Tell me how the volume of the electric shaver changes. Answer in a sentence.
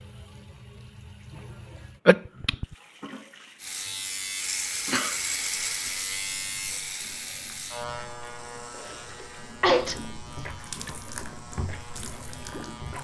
The volume of the electric shaver goes down.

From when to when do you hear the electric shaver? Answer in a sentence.
You can hear the electric shaver from 3.5 to 12.9 s.